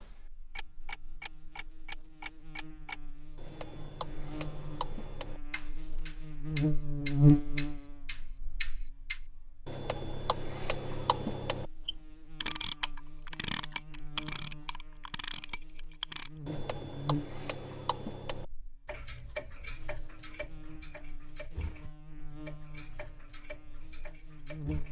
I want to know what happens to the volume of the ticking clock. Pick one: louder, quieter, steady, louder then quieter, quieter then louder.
louder then quieter.